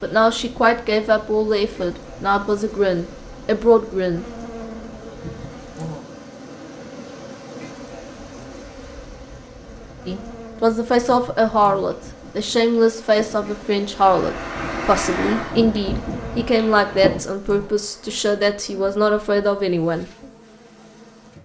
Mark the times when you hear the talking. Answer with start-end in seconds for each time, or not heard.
0.0-4.2, 10.1-20.1.